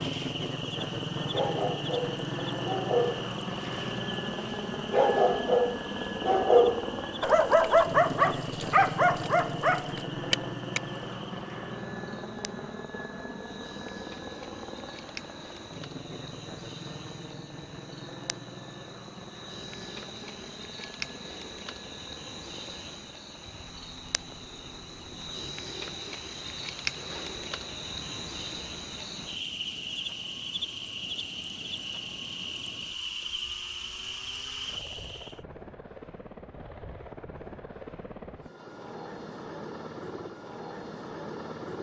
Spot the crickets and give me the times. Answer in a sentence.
The crickets can be heard from 0.0 to 35.4 s.